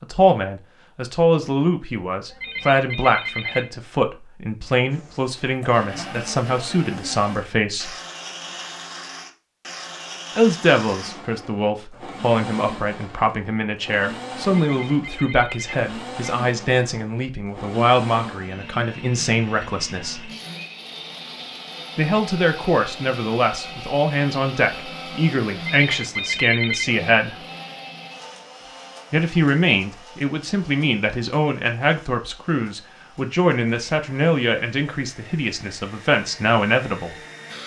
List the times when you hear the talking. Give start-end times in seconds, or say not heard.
0.0-8.0, 10.3-20.3, 21.9-27.4, 29.1-37.1.